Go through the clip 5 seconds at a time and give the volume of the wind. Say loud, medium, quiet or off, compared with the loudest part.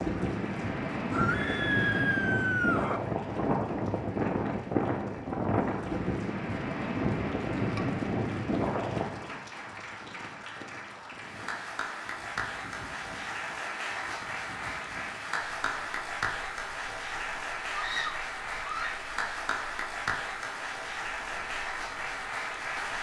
loud, loud, quiet, quiet, quiet.